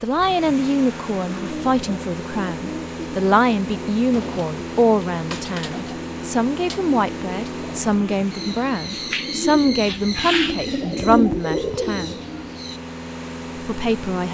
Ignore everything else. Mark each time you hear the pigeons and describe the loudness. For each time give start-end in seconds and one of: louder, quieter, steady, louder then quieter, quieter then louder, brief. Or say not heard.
1.2-12.8 louder.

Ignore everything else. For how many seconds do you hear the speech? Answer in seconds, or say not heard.
13 s.